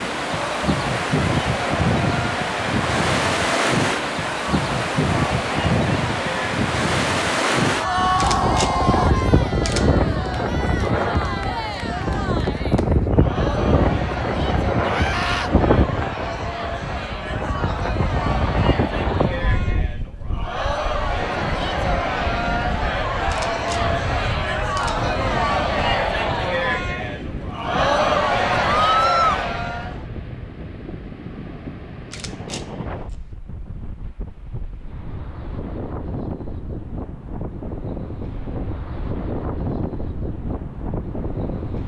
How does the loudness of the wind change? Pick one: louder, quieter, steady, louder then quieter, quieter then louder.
quieter.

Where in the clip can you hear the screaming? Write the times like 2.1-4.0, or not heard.
7.8-9.2, 14.8-15.5, 28.9-29.4.